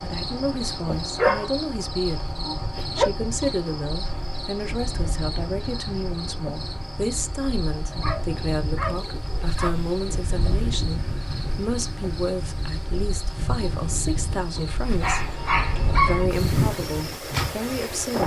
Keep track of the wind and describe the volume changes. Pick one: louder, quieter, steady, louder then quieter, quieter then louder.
louder.